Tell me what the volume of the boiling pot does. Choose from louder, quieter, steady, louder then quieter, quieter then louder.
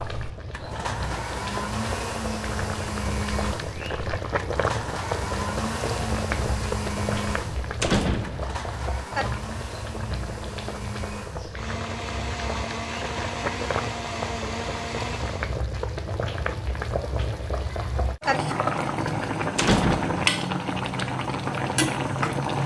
louder.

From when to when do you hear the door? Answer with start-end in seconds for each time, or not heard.
7.8-8.5, 19.6-20.2.